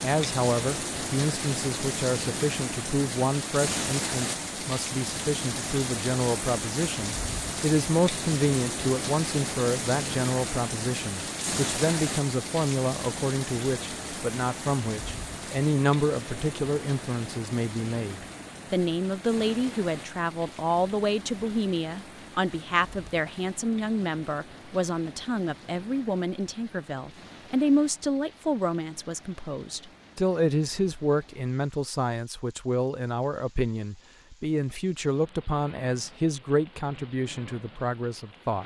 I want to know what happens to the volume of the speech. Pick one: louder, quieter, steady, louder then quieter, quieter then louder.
steady.